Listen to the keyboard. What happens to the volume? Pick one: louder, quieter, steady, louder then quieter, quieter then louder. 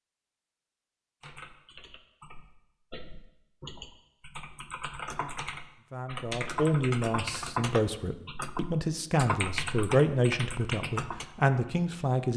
louder.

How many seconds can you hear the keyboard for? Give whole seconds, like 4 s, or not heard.
10 s.